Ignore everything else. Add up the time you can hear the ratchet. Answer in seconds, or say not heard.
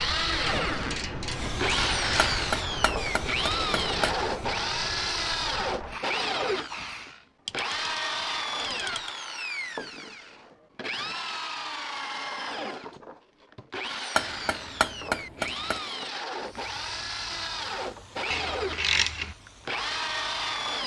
5 s.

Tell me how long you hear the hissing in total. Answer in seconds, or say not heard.
11 s.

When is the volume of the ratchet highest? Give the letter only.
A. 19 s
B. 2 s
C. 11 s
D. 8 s
A.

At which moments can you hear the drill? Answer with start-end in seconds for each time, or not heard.
0.0-20.8.